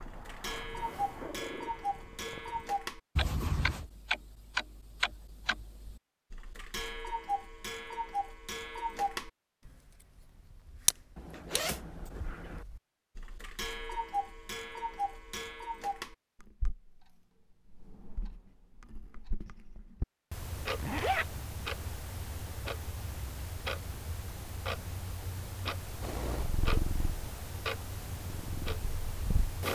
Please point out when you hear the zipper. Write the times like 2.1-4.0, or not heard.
3.1-3.9, 11.2-12.7, 20.8-21.2.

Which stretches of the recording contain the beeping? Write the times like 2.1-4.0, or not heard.
not heard.